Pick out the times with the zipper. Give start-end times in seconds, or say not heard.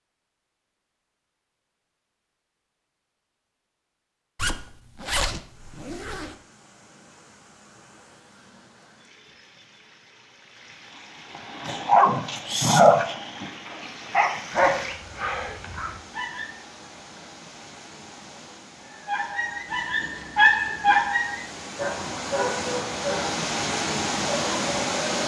4.3-6.3, 19.6-21.0.